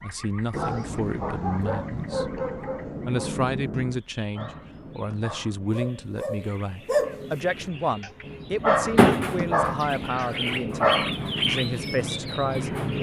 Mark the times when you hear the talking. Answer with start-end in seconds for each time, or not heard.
0.0-2.5, 3.0-12.7.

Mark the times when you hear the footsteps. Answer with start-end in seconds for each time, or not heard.
not heard.